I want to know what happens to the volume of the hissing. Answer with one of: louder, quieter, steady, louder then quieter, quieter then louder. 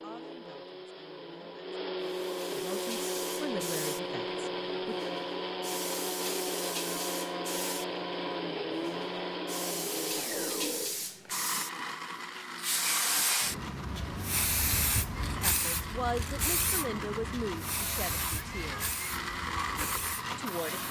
louder then quieter.